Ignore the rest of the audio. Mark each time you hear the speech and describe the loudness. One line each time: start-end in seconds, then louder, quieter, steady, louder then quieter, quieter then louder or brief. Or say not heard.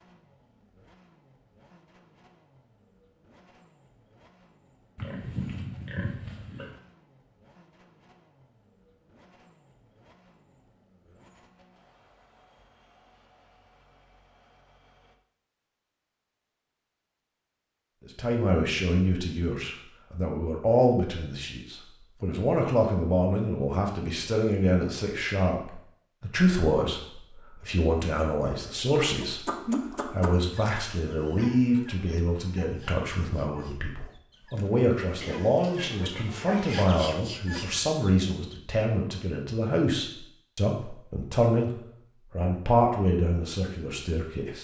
18.1-44.5 steady.